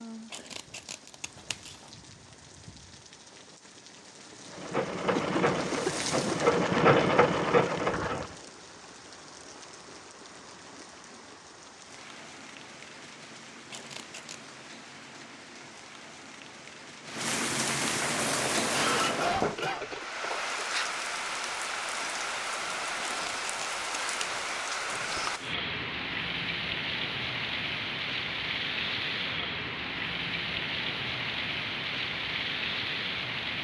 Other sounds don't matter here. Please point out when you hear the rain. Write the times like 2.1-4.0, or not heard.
0.0-33.6.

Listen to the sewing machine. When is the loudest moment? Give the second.
7 s.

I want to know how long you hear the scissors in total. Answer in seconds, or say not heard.
4 s.